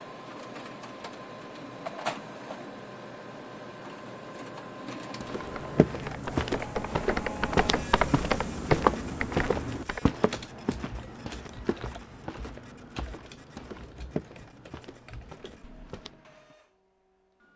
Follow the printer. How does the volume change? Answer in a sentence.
The volume of the printer goes down.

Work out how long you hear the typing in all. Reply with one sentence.
The typing can be heard for 11 seconds in total.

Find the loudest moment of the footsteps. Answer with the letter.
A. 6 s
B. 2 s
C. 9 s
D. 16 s
C.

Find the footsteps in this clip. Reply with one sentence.
The footsteps can be heard from 5.2 to 16.6 s.